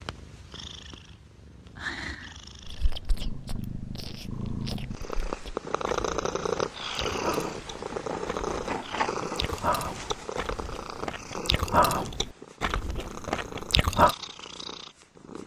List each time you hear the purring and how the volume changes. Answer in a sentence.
You can hear the purring from 0.0 to 15.4 s, getting louder then quieter.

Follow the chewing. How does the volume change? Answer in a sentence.
The loudness of the chewing goes up.